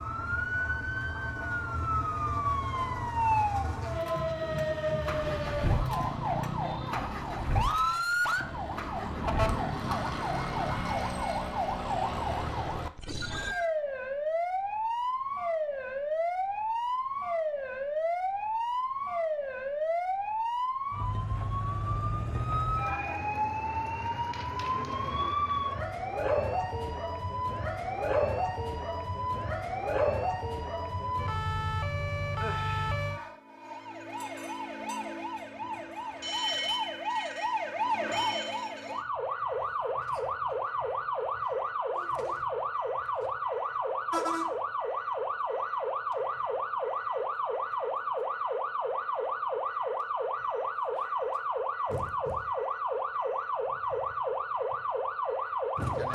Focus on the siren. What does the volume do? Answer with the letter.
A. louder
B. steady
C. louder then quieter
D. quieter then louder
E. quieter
B.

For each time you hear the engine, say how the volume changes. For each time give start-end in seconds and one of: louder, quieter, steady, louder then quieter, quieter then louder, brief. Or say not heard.
0.0-10.8 steady.